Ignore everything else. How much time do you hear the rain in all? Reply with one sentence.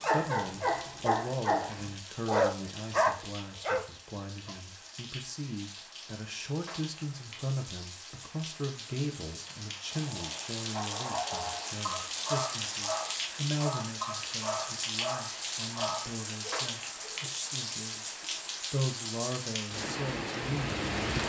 The rain can be heard for 21 seconds in total.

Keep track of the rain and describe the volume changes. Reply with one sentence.
The loudness of the rain goes up.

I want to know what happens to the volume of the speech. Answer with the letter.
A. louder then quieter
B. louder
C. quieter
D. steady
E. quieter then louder
D.